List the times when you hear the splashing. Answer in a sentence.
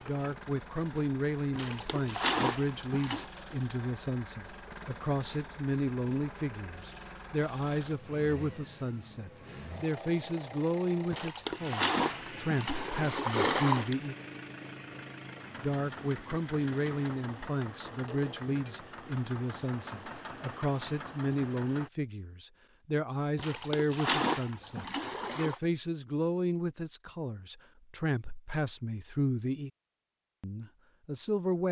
You can hear the splashing from 1.6 to 3.3 s, from 11.1 to 13.9 s and from 23.4 to 25.6 s.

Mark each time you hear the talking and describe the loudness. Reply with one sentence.
The talking can be heard from 0.1 to 14.2 s, at a steady volume; from 15.6 to 29.7 s, at a steady volume; and briefly from 30.4 to 31.6 s.